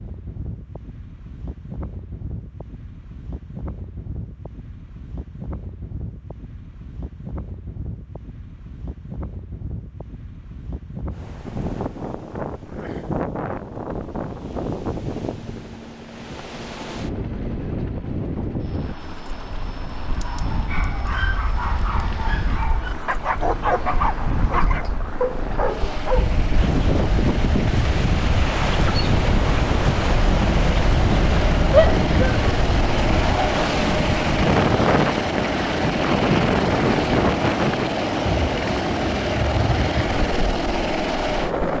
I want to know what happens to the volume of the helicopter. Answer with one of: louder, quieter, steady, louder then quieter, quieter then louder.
louder.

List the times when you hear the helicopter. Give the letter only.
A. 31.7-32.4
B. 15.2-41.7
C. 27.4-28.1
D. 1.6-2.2
B.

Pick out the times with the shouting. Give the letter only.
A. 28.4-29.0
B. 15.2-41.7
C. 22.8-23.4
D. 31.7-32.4
D.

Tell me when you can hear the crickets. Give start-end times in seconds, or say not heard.
not heard.